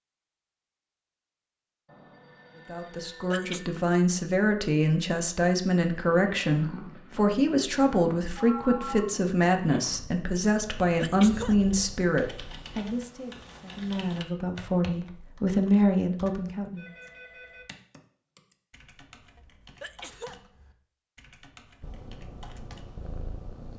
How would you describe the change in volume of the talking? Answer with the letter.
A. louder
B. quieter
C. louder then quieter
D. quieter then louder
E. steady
E.